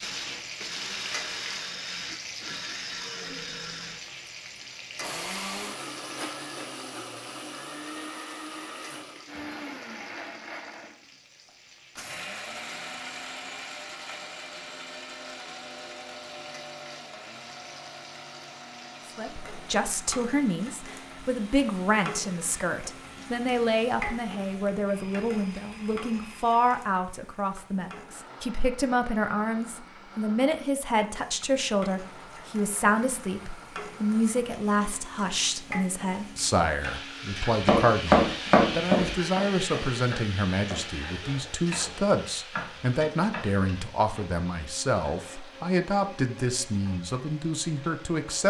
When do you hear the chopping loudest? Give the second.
38 s.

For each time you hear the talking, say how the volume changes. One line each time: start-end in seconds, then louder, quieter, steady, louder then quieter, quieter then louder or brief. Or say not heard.
19.1-48.4 steady.